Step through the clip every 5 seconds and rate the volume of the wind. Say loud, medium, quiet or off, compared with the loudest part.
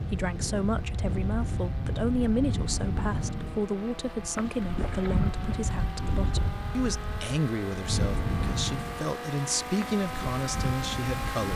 loud, loud, medium.